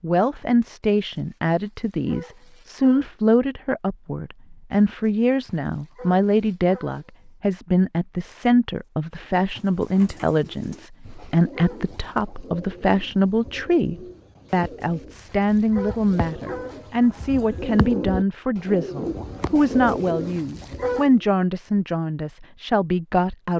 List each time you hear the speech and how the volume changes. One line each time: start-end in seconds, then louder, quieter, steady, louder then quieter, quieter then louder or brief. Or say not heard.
0.0-23.5 steady.